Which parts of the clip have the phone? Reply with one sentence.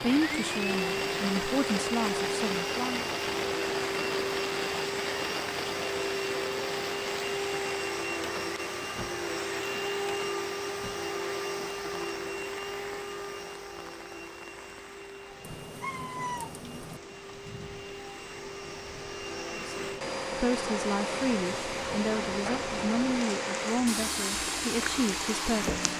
The phone can't be heard in this clip.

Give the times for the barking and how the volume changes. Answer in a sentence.
The barking can't be heard in this clip.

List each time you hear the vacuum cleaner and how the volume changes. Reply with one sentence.
The vacuum cleaner can be heard from 0.0 to 25.9 s, getting quieter then louder.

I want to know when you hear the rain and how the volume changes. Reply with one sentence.
The rain can be heard from 0.0 to 25.9 s, getting quieter then louder.